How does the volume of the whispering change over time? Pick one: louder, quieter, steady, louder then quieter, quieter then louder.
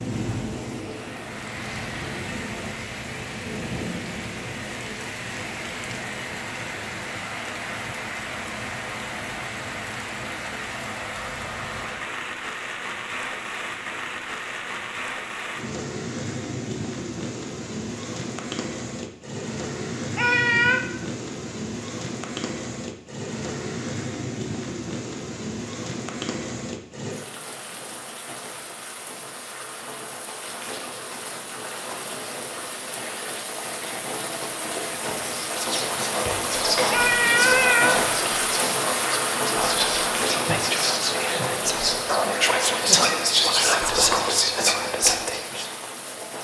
louder.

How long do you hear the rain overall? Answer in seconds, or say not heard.
46 s.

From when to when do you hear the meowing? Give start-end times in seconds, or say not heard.
20.1-20.8, 36.9-38.0.